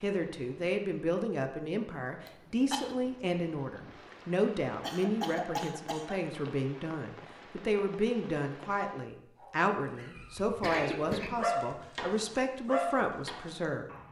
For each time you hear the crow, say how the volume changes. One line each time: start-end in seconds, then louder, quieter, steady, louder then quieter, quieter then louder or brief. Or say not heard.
not heard.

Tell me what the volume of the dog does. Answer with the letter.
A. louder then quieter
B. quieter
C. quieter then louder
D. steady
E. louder
A.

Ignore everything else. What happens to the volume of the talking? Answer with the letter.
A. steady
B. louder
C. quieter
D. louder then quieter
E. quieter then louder
A.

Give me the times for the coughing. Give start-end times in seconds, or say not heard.
2.2-3.0, 4.8-6.2, 10.2-11.4.